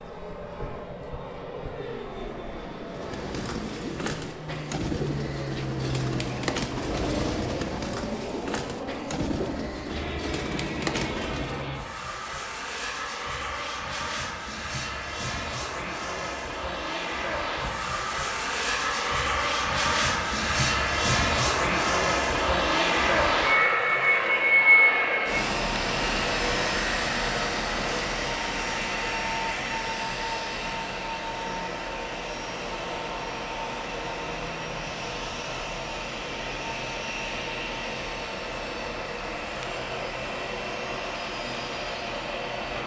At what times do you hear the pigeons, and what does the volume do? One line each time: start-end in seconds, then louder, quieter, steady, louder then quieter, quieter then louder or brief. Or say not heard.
2.9-11.7 steady.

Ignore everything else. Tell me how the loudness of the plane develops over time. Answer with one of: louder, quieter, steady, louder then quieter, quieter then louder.
louder then quieter.